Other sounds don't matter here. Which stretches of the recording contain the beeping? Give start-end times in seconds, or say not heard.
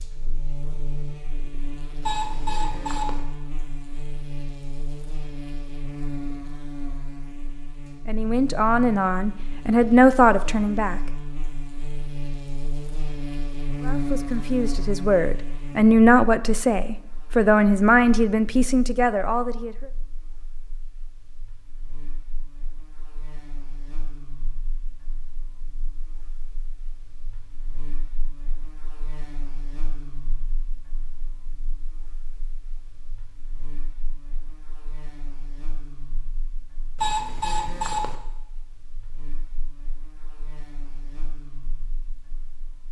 2.0-3.2, 37.0-38.1.